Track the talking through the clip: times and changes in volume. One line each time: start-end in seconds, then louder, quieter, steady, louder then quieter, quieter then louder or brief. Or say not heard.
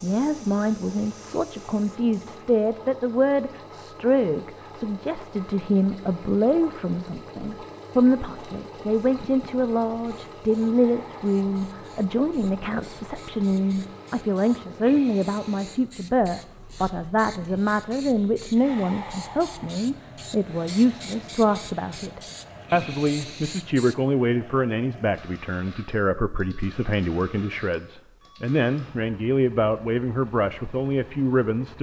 0.0-31.7 steady.